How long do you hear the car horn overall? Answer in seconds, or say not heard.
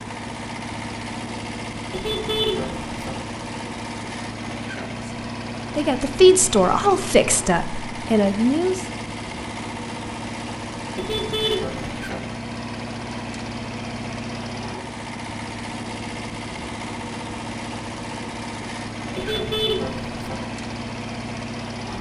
4 s.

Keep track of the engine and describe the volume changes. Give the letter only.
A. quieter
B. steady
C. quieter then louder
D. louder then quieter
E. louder
B.